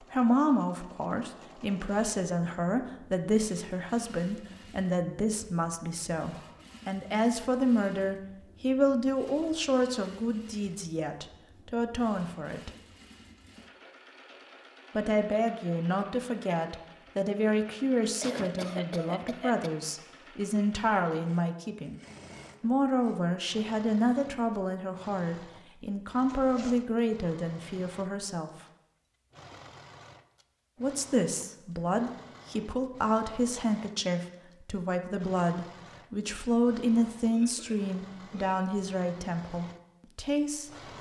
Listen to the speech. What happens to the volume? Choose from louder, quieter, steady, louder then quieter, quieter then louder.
steady.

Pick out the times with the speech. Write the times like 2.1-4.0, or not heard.
0.1-12.7, 14.9-22.0, 22.6-28.5, 30.8-40.7.